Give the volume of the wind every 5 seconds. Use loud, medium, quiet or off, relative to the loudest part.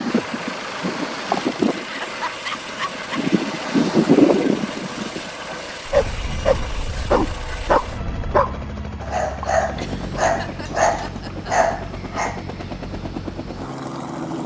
loud, quiet, off.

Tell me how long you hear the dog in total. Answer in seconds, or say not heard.
7 s.